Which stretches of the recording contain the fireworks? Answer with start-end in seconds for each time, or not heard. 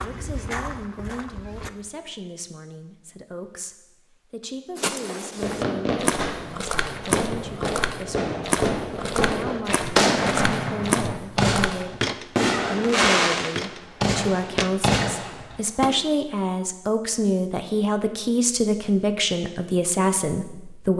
5.3-15.9.